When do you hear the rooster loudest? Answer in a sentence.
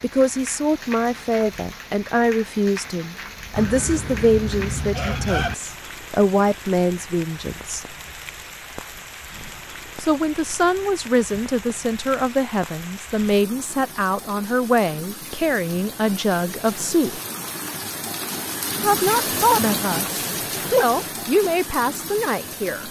The loudest moment of the rooster is at 5 seconds.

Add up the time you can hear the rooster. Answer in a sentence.
You can hear the rooster for 2 seconds altogether.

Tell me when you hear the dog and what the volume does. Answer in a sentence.
You can't hear the dog here.